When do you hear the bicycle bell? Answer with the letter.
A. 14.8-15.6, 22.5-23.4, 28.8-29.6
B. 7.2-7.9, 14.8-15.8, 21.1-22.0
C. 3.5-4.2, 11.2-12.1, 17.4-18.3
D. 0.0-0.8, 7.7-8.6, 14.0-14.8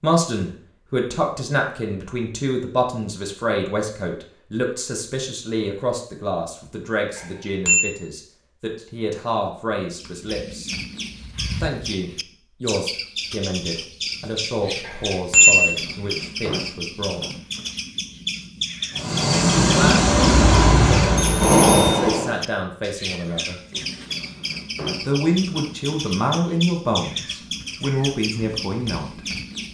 B.